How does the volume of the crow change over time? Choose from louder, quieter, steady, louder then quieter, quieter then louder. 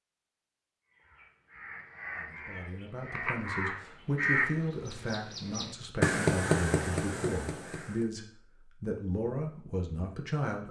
louder.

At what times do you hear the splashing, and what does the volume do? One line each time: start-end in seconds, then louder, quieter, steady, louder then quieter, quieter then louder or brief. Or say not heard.
not heard.